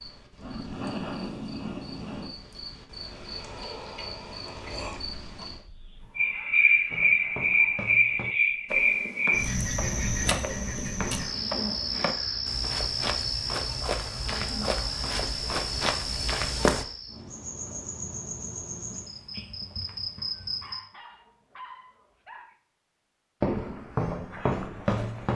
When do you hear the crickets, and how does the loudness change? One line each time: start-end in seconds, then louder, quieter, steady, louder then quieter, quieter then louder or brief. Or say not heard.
0.0-20.8 louder then quieter.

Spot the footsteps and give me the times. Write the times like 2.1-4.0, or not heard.
6.9-16.9, 23.4-25.3.